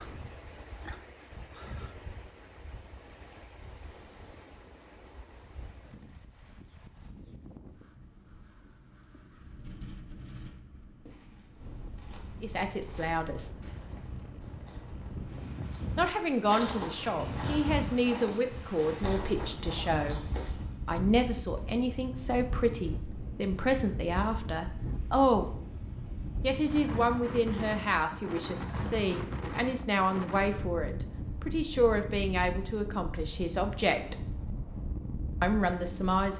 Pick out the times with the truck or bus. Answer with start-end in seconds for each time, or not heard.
not heard.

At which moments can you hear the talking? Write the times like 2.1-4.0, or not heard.
12.4-13.5, 15.9-25.5, 26.4-34.2, 35.4-36.3.